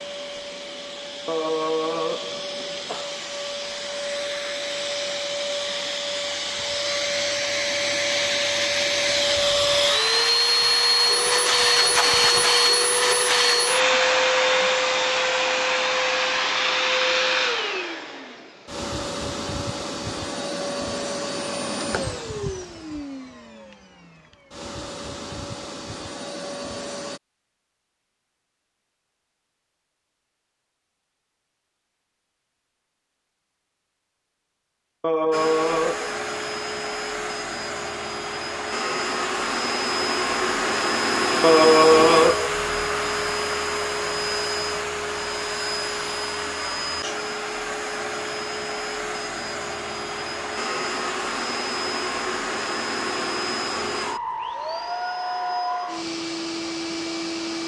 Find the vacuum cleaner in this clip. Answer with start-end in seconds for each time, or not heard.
0.0-27.2, 35.3-57.6.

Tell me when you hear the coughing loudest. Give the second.
42 s.